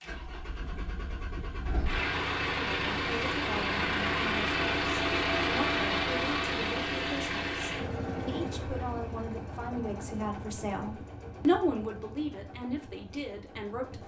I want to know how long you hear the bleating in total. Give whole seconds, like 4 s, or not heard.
not heard.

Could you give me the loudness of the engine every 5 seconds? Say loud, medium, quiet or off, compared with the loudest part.
loud, loud, quiet.